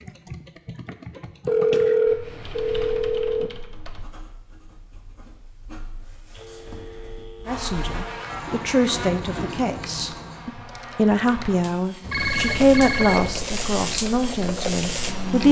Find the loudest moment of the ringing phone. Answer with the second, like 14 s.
2 s.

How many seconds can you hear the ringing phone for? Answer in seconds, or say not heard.
6 s.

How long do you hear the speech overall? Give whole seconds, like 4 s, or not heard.
8 s.